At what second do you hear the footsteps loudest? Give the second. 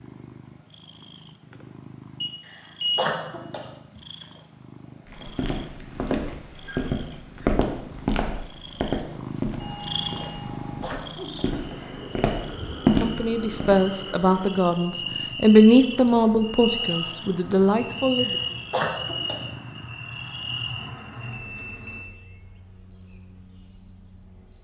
13 s.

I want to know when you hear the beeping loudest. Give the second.
3 s.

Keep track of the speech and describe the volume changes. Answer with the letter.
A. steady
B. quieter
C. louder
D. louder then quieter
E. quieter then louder
D.